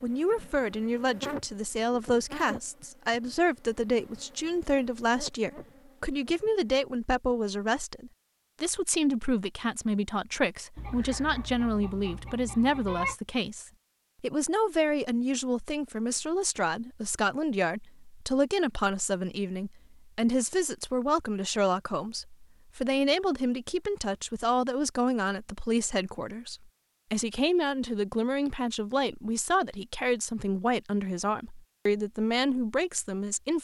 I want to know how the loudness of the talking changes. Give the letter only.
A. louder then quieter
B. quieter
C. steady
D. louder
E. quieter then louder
C.